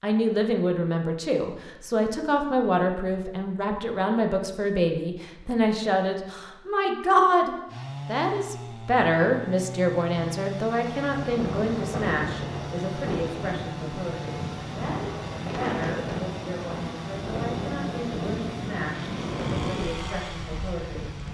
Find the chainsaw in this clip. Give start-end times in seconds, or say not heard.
7.7-21.2.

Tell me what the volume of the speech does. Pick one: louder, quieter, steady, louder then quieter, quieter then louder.
quieter.